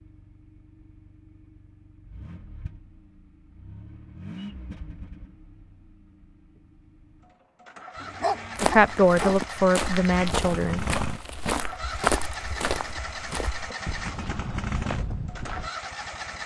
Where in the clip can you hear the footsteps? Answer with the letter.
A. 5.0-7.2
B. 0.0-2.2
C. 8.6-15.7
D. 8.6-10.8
C.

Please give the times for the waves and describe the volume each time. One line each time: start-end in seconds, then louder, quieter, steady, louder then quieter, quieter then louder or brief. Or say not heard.
not heard.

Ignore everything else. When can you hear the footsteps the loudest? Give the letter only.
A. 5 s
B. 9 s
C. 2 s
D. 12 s
D.